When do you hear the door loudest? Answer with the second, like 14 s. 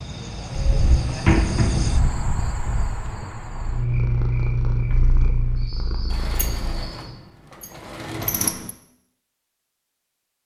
1 s.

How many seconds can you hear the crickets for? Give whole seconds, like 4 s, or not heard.
7 s.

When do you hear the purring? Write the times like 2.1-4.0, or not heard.
3.5-6.8.